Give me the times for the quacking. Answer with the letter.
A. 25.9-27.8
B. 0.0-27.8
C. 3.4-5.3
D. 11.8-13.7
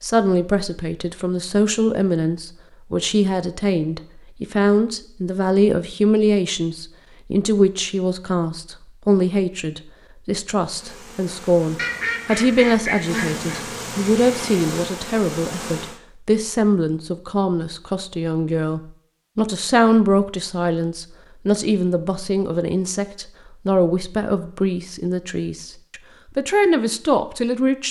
D.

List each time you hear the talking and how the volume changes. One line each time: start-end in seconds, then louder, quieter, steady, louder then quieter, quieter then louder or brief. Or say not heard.
0.0-27.8 steady.